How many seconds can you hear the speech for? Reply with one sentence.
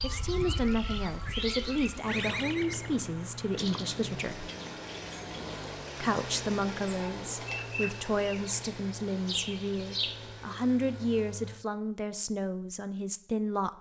The speech can be heard for 12 seconds in total.